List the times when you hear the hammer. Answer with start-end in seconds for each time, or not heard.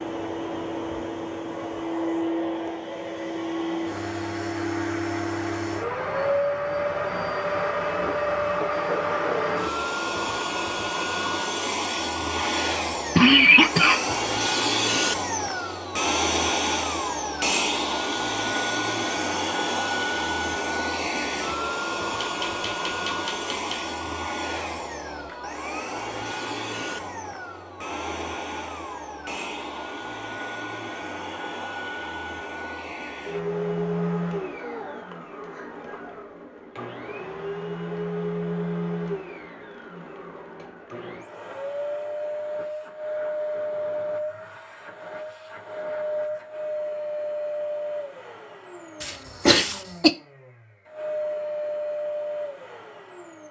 22.2-23.9.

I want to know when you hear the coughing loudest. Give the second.
13 s.